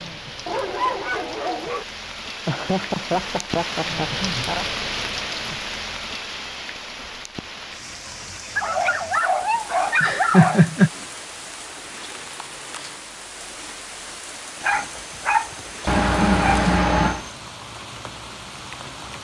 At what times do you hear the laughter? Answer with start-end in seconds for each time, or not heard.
2.5-4.7, 10.0-10.9, 15.8-17.2.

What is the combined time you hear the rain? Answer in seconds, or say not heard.
19 s.